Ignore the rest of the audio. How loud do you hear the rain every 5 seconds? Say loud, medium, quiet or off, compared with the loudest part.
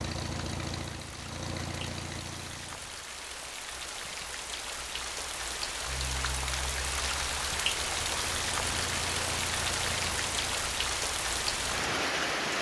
medium, loud, loud.